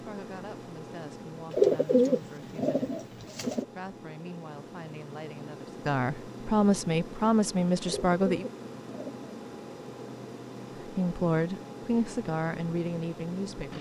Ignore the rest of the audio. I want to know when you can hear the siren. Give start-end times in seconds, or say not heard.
not heard.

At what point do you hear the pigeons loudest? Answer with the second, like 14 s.
2 s.